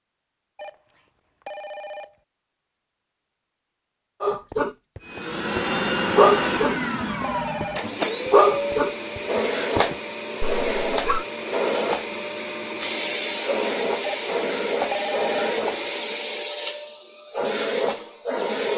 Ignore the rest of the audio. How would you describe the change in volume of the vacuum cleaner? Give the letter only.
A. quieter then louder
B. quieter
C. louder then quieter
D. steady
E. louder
D.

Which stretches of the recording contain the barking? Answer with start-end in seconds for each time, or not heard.
4.2-11.2.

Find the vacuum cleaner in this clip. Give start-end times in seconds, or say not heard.
5.0-18.7.